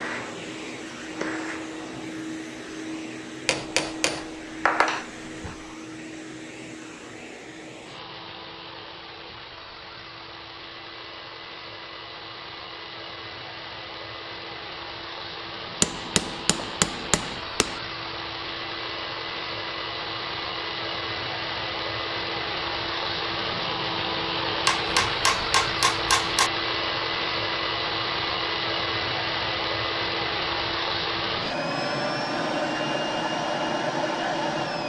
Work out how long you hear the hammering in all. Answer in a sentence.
You can hear the hammering for 6 seconds altogether.